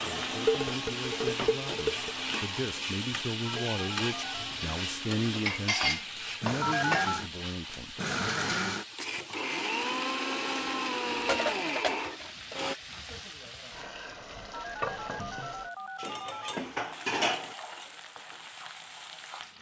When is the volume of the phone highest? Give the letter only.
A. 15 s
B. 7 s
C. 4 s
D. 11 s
B.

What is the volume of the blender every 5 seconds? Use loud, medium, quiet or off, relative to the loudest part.
medium, loud, loud, off.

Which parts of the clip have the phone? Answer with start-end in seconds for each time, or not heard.
3.5-4.5, 6.6-7.2, 14.5-16.6.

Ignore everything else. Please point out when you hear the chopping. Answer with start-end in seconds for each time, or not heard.
not heard.